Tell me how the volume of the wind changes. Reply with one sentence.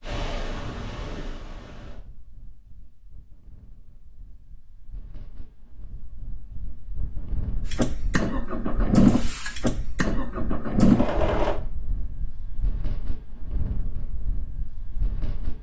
The volume of the wind goes down, then up.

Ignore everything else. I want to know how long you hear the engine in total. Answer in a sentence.
The engine can be heard for 4 seconds in total.